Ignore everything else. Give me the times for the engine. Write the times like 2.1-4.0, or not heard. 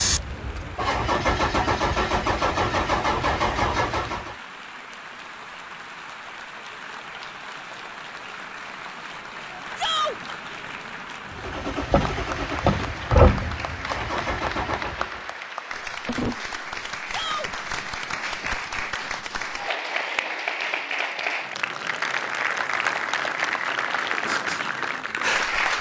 0.0-4.3, 11.3-15.3.